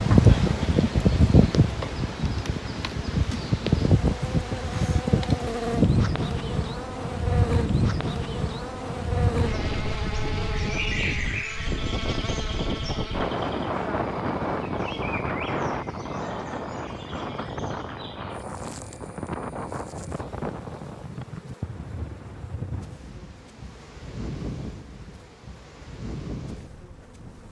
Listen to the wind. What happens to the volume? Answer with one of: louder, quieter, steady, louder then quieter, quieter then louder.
quieter.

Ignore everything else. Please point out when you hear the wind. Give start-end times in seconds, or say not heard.
0.0-27.4.